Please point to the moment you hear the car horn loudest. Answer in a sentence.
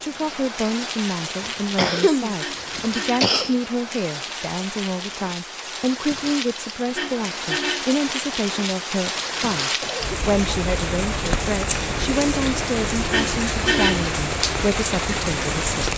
The loudest moment of the car horn is at 14 seconds.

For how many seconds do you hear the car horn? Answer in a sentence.
You can hear the car horn for 3 seconds altogether.